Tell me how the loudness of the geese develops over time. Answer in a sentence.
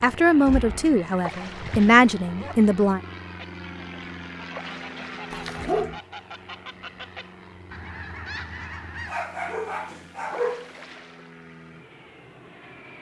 The volume of the geese goes up.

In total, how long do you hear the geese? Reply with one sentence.
The geese can be heard for 6 seconds in total.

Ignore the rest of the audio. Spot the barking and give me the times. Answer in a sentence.
The barking can be heard from 0.5 to 2.5 s, from 5.3 to 6.0 s and from 9.1 to 10.7 s.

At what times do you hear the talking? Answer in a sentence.
The talking can be heard from 0.0 to 3.0 s.